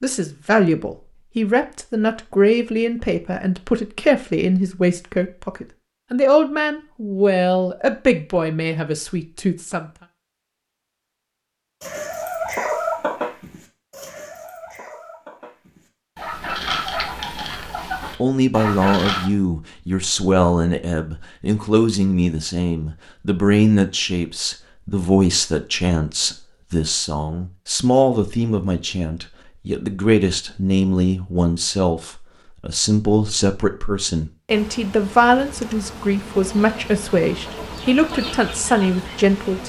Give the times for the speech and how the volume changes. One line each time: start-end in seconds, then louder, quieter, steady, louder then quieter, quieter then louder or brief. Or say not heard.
0.0-9.9 steady
18.2-39.6 steady.